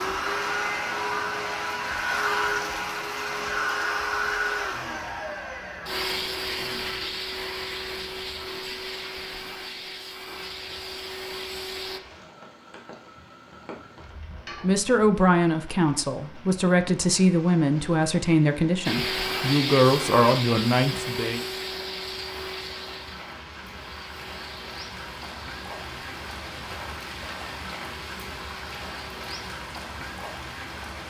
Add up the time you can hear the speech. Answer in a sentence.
You can hear the speech for 7 seconds altogether.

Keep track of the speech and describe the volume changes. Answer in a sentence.
The volume of the speech stays about the same.